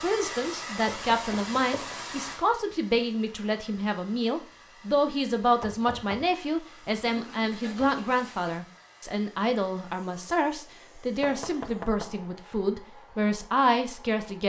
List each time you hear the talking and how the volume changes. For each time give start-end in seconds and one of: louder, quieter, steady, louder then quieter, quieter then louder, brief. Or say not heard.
0.0-14.4 steady.